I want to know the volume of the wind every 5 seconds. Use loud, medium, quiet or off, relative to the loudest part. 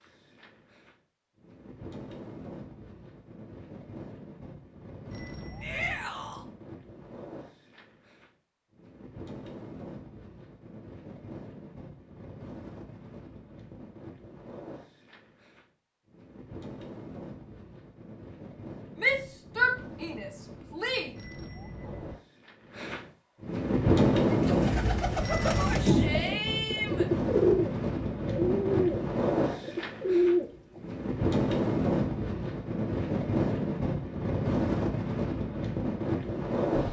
quiet, quiet, quiet, quiet, loud, loud, loud, loud.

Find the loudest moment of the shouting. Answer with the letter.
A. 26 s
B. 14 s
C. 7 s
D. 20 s
D.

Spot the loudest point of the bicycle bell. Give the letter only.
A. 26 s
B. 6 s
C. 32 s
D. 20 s
A.